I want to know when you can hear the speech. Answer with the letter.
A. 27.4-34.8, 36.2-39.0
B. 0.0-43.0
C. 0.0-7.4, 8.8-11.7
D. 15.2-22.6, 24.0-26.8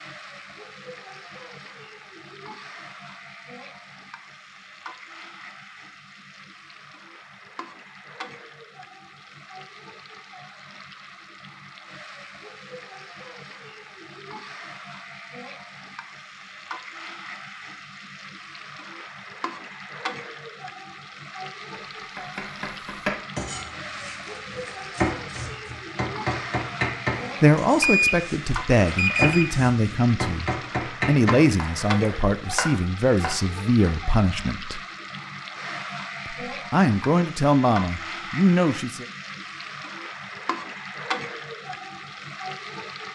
A.